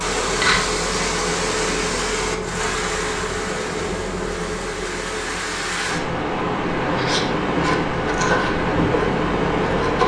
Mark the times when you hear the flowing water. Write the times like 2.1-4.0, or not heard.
0.0-10.0.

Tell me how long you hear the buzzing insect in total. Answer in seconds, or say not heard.
10 s.